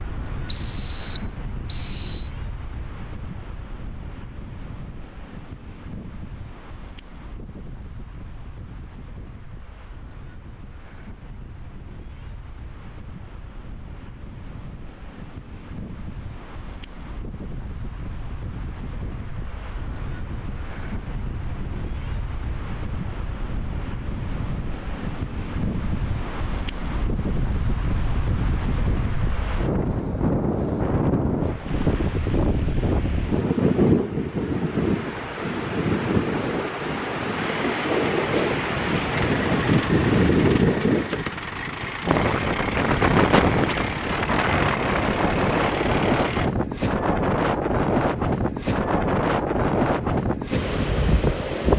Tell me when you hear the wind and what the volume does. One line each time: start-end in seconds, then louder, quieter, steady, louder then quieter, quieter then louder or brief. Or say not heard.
0.0-51.7 louder.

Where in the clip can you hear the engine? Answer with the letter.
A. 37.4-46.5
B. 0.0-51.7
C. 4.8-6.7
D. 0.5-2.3
A.